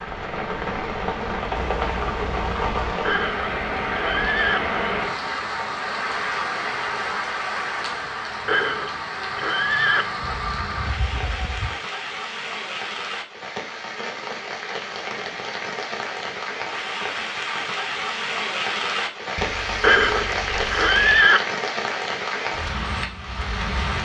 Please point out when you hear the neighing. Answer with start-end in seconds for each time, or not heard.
3.0-4.6, 8.4-10.1, 19.8-21.4.